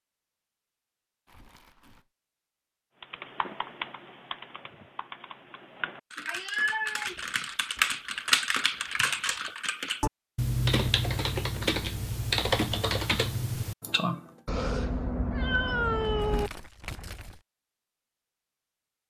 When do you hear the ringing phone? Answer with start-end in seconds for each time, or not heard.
not heard.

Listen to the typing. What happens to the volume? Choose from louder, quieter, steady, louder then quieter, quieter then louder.
louder.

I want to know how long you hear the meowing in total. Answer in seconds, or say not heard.
3 s.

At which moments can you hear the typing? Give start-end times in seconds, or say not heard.
3.0-14.2.